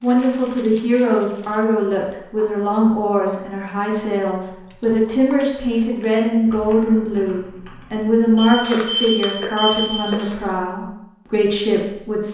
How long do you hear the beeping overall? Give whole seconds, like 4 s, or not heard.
2 s.